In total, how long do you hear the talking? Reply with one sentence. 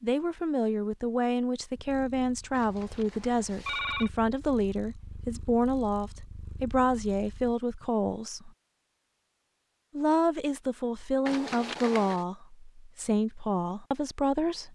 The talking can be heard for 13 seconds in total.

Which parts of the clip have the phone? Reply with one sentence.
The phone can be heard from 2.5 to 4.1 s and from 11.2 to 12.2 s.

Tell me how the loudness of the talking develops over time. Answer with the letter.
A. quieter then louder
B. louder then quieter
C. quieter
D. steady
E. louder
D.